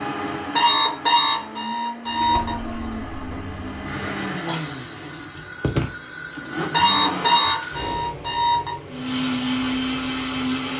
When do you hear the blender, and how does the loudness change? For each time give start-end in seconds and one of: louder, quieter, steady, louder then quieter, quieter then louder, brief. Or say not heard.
0.0-7.5 louder
8.8-10.7 brief.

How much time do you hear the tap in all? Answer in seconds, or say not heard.
9 s.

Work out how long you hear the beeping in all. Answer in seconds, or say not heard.
4 s.